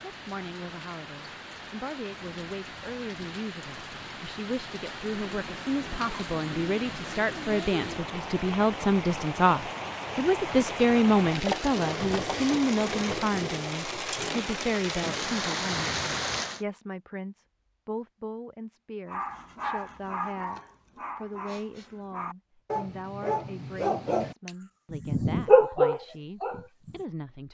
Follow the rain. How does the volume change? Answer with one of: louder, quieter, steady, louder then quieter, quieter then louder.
louder.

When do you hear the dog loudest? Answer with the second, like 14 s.
26 s.